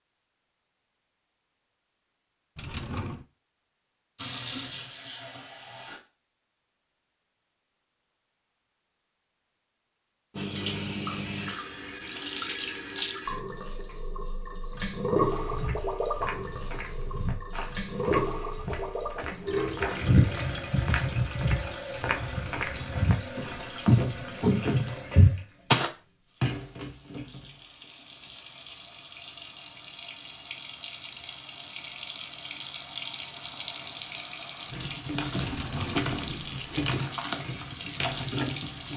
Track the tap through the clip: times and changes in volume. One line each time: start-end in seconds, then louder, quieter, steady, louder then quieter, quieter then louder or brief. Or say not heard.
4.2-6.0 brief
10.3-38.9 quieter then louder.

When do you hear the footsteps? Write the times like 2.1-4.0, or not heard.
15.4-25.9.